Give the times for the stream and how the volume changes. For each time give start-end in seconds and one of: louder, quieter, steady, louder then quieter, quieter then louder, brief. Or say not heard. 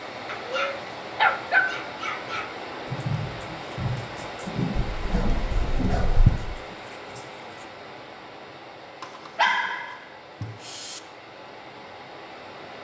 0.0-12.7 quieter.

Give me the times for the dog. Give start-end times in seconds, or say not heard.
0.2-2.5, 5.0-6.5, 9.0-11.0.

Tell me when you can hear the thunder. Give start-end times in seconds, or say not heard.
2.9-7.7.